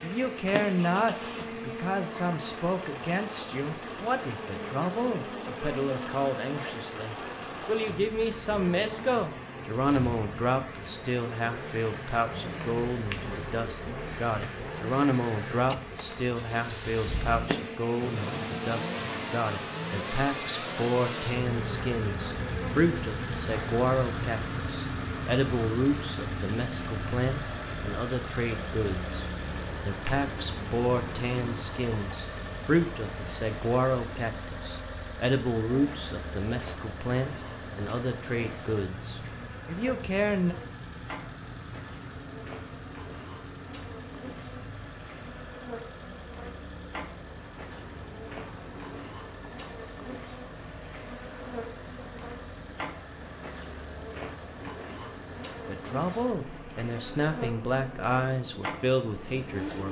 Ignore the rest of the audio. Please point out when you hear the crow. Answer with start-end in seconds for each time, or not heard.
not heard.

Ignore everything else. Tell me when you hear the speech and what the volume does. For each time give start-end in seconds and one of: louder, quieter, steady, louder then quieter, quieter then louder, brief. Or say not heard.
0.0-40.5 steady
55.6-59.8 steady.